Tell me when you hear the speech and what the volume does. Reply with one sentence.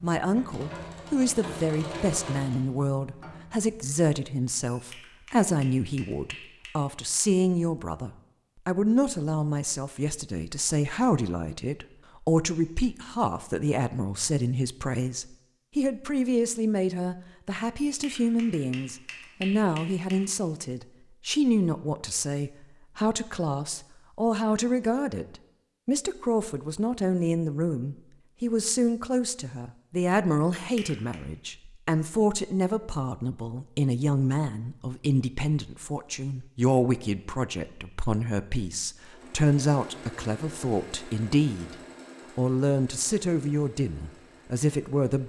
You can hear the speech from 0.0 to 41.8 s, at a steady volume; and briefly from 42.4 to 45.2 s.